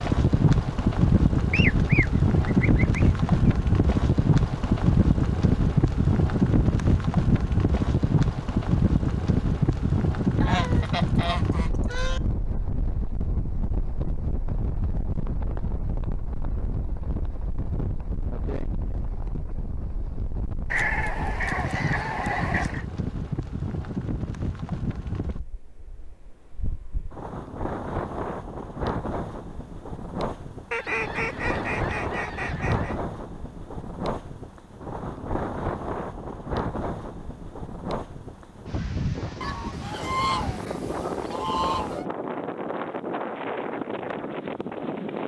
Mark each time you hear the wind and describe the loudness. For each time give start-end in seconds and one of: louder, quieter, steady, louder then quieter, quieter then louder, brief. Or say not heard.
0.0-45.2 quieter.